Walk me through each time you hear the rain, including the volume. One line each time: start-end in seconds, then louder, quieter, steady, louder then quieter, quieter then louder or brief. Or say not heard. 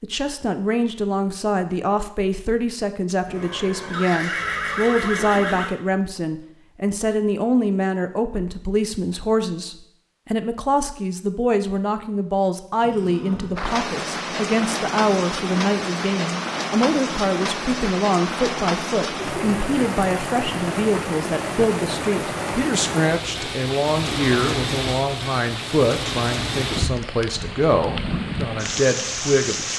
13.6-29.7 steady.